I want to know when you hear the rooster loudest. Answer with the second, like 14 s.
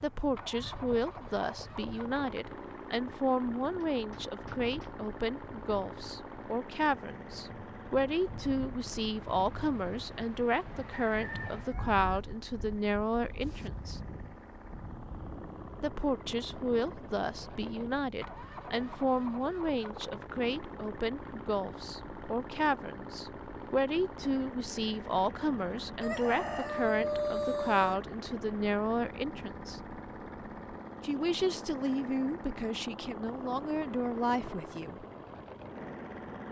27 s.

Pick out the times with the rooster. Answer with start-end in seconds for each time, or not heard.
10.8-12.0, 26.0-27.9.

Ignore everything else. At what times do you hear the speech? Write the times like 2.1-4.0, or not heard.
0.0-14.0, 15.8-29.8, 31.0-35.0.